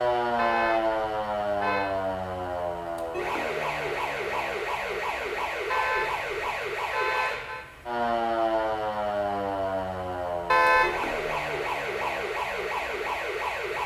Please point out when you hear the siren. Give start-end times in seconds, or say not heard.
0.0-13.8.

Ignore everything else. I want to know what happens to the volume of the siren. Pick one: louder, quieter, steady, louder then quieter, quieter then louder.
steady.